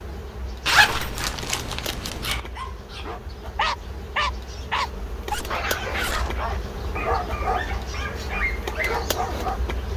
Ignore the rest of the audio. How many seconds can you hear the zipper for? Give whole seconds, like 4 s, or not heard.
3 s.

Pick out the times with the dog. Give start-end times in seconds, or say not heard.
2.2-9.6.